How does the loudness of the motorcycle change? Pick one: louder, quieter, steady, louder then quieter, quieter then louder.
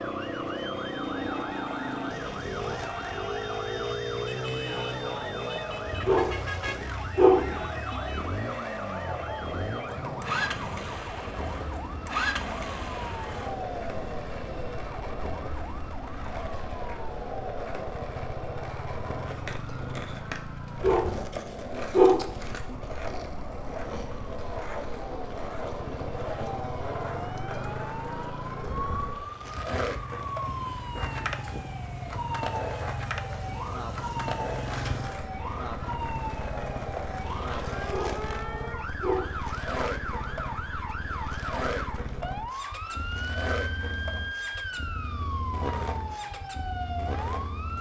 quieter.